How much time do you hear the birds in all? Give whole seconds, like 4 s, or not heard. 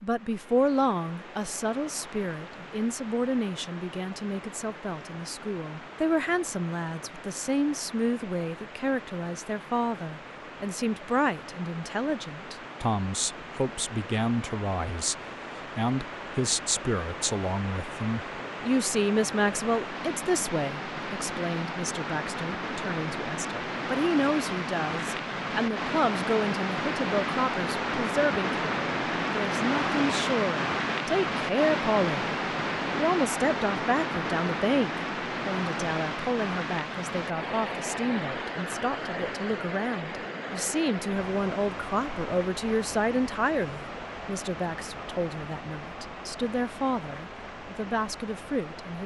not heard.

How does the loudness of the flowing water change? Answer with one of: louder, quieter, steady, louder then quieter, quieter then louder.
louder then quieter.